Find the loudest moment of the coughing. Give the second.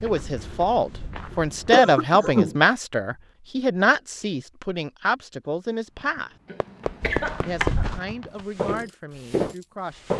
2 s.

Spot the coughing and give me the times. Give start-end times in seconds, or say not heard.
1.7-2.5, 6.5-7.8.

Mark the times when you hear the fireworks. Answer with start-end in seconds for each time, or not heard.
6.0-8.4.